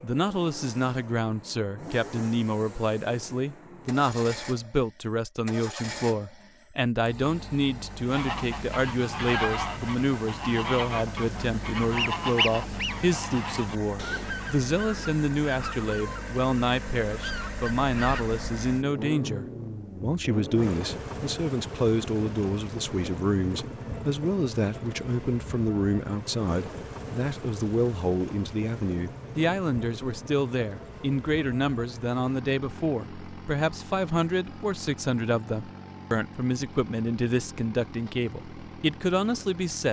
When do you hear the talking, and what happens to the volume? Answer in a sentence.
The talking can be heard from 0.0 to 39.8 s, at a steady volume.